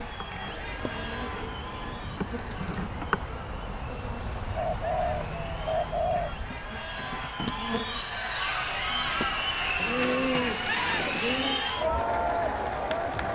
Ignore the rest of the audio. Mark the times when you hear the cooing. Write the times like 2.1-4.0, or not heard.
0.5-2.9, 4.5-6.4, 9.8-11.7.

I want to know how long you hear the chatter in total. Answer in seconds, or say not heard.
13 s.